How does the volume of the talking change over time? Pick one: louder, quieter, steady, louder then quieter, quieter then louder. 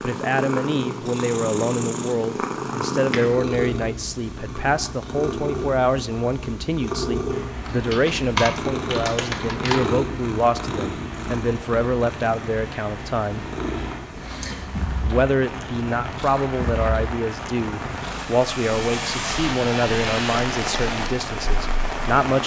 steady.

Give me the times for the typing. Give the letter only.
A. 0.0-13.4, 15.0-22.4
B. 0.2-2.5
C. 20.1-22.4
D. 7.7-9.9
D.